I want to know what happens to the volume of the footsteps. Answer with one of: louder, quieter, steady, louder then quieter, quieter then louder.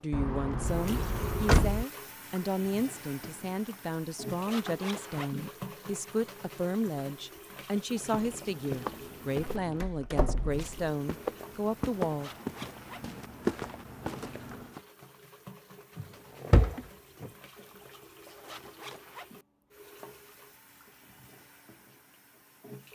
quieter then louder.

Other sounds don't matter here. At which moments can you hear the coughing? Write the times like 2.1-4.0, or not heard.
not heard.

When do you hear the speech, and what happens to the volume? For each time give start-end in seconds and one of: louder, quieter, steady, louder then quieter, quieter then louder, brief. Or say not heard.
0.0-12.3 steady.